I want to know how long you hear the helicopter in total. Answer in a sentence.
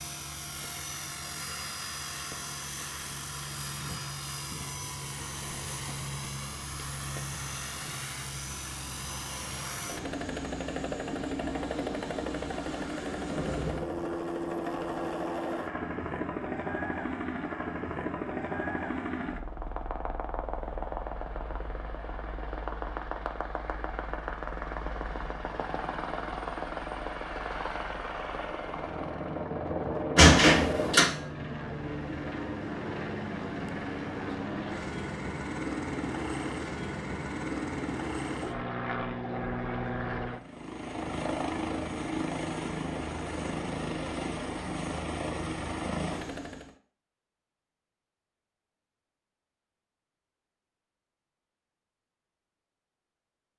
The helicopter can be heard for 47 seconds in total.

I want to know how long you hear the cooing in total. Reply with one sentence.
The cooing can't be heard in this clip.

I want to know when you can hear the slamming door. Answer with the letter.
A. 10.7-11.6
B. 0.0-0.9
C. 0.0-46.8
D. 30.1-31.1
D.